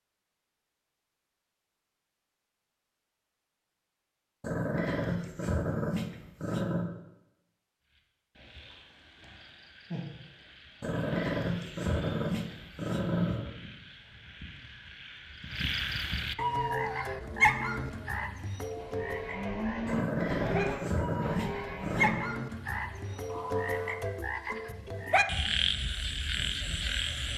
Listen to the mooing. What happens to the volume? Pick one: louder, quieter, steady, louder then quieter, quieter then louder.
louder then quieter.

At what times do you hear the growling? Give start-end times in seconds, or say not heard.
4.4-6.9, 10.8-13.5, 19.9-22.2.